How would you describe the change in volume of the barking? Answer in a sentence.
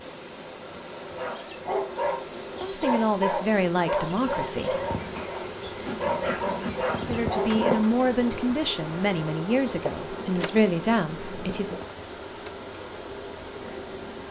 The volume of the barking stays about the same.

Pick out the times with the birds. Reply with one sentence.
The birds can't be heard in this clip.